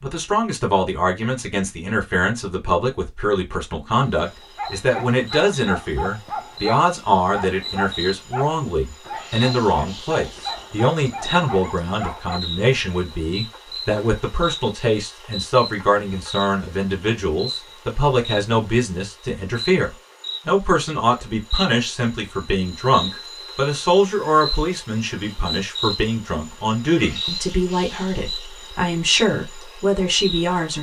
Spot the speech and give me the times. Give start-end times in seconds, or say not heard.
0.0-30.7.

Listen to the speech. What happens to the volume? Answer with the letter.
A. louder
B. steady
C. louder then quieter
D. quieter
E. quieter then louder
B.